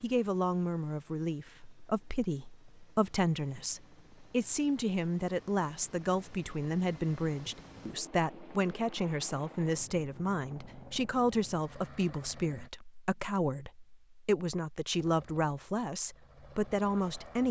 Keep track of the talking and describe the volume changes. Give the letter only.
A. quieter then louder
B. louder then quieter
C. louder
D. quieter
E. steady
E.